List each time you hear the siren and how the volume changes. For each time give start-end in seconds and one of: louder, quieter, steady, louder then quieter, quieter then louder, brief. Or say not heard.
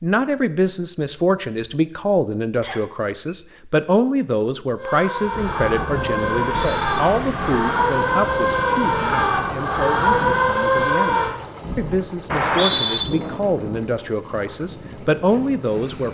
4.8-11.3 louder.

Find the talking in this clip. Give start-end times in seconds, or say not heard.
0.0-16.1.